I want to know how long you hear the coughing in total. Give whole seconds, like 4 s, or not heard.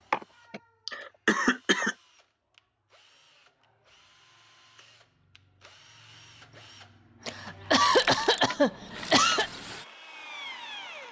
4 s.